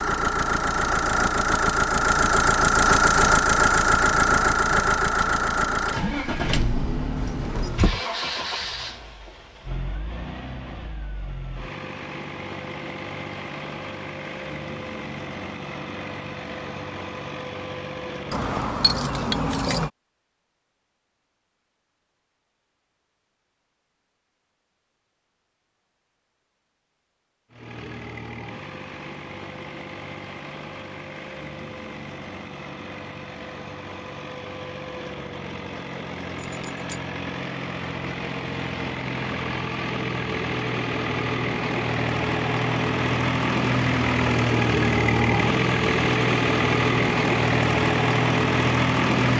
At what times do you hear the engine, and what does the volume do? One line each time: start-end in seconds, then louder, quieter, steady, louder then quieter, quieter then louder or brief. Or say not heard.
0.0-18.8 quieter
27.5-49.3 louder.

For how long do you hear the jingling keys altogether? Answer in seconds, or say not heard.
3 s.